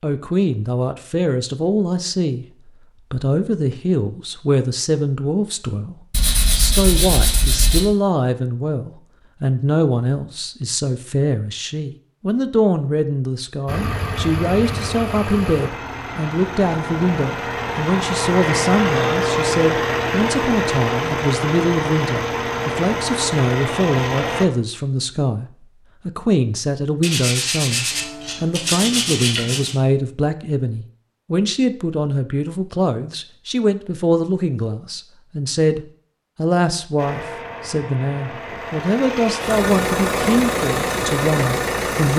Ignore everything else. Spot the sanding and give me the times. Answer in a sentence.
The sanding can be heard from 6.1 to 7.8 s and from 27.0 to 29.8 s.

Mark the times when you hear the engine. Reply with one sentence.
The engine can be heard from 13.7 to 24.4 s and from 37.0 to 42.1 s.